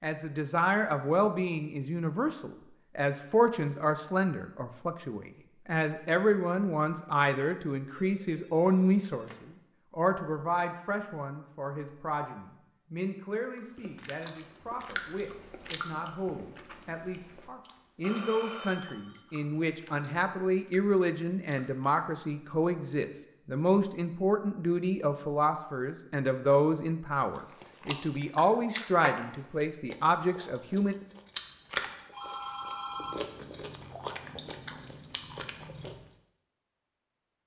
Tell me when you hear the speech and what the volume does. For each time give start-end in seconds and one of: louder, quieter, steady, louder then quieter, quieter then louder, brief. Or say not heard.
0.0-30.9 quieter then louder.